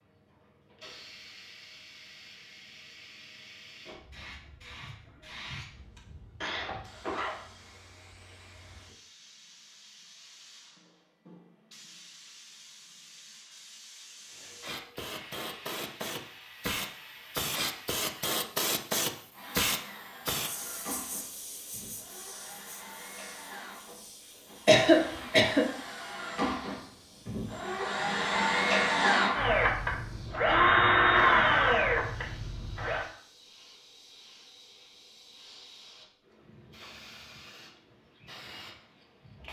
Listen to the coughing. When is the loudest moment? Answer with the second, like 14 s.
25 s.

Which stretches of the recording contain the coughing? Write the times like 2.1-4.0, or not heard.
6.4-7.5, 24.6-25.6.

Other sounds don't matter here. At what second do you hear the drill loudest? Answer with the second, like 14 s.
31 s.